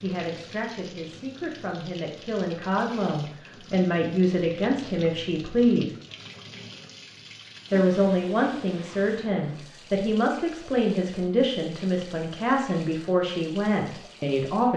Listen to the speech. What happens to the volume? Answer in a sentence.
The volume of the speech goes up.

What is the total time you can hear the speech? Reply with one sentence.
The speech can be heard for 13 seconds in total.